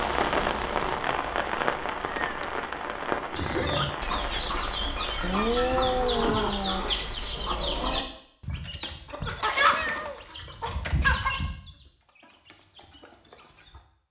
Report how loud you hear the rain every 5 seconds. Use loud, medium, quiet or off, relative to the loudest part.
loud, medium, off.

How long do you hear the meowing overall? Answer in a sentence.
You can hear the meowing for 3 seconds altogether.